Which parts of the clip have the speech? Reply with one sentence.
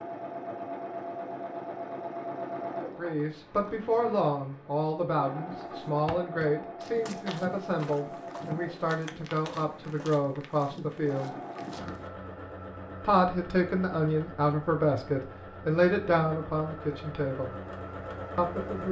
The speech can be heard from 2.8 to 11.3 s, from 13.0 to 17.6 s and from 18.4 to 18.8 s.